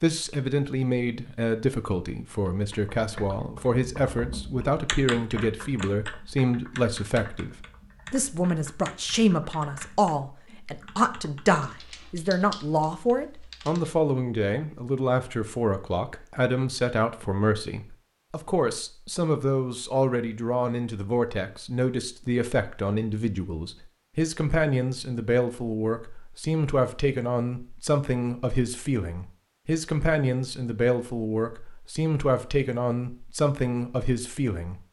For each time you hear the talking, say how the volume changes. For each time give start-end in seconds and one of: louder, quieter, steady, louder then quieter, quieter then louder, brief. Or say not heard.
0.0-34.8 steady.